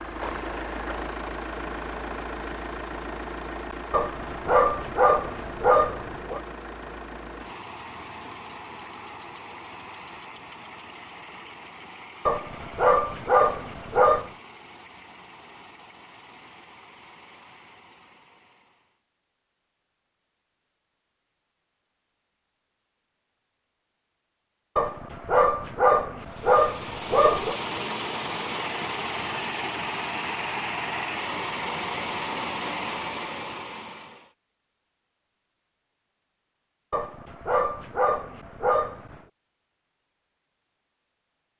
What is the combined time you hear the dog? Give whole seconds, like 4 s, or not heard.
10 s.